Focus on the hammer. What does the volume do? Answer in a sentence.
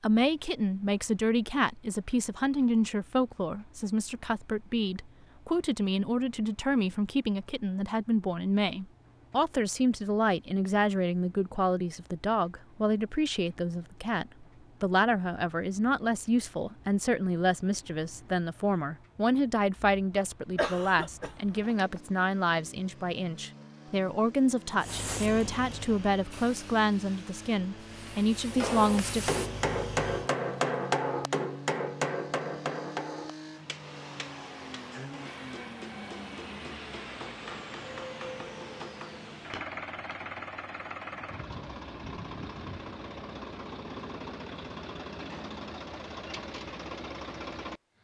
The volume of the hammer goes down.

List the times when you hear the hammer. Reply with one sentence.
The hammer can be heard from 28.5 to 40.2 s.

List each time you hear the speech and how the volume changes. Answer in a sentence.
You can hear the speech from 0.0 to 29.4 s, at a steady volume.